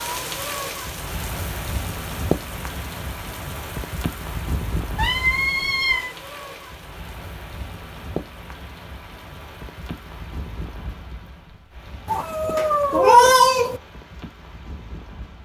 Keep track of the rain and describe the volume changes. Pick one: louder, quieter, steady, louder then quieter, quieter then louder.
quieter.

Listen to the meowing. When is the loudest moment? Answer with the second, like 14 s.
13 s.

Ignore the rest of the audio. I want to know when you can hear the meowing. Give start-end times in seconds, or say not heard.
5.0-6.2, 12.1-13.8.